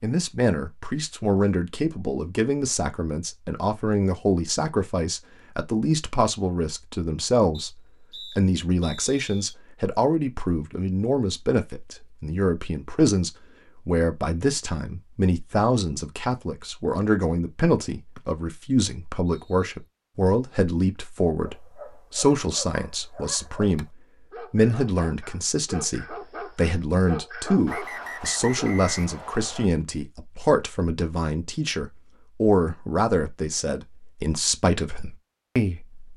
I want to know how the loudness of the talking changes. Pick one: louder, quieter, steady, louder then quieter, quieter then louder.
steady.